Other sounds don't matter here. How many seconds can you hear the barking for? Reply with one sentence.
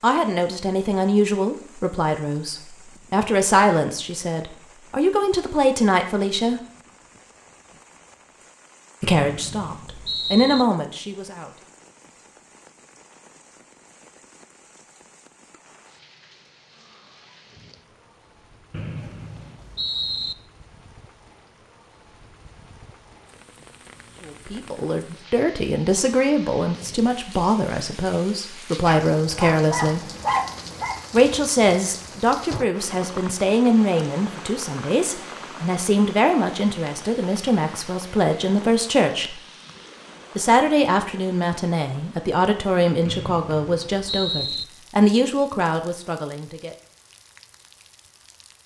You can hear the barking for 2 seconds altogether.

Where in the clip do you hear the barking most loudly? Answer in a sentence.
The volume of the barking peaks at 30 seconds.